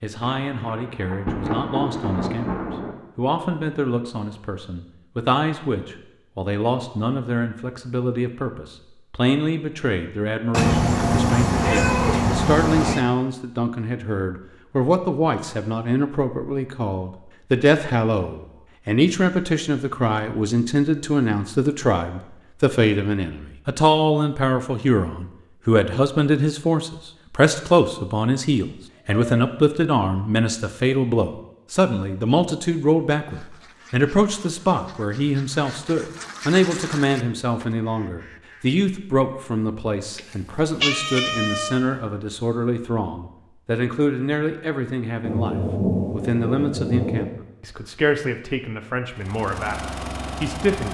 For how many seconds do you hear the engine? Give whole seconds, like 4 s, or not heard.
2 s.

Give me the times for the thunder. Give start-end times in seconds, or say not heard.
0.2-3.0, 45.2-47.2.